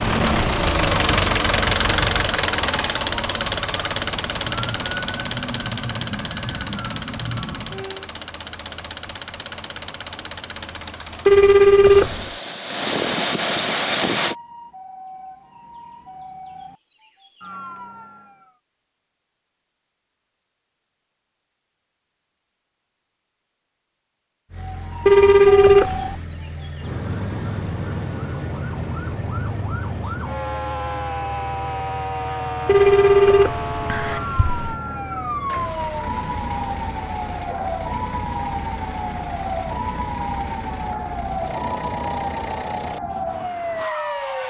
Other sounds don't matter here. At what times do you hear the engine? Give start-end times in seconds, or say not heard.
0.0-14.3, 24.5-44.4.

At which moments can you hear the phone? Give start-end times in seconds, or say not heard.
11.2-12.3, 25.1-26.2, 32.6-34.8.